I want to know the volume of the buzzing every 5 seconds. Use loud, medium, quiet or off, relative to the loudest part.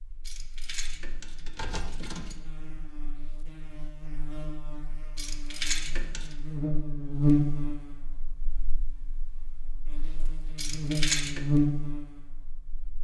quiet, loud, loud.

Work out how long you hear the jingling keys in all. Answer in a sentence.
The jingling keys can be heard for 4 seconds in total.